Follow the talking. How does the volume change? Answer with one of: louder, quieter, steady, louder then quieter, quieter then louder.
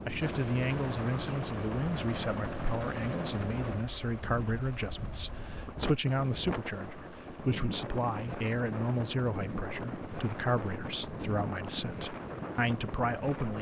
steady.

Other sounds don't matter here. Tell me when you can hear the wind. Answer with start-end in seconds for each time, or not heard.
0.0-13.5.